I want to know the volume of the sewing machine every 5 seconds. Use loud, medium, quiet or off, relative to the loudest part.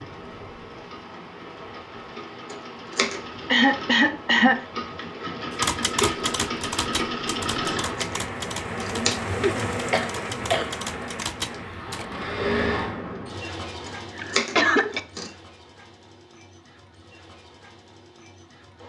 medium, loud, loud, quiet.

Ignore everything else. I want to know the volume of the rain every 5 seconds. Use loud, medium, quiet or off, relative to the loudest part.
medium, loud, loud, off.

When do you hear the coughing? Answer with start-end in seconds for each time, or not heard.
3.5-4.6, 9.4-10.7, 14.2-15.0.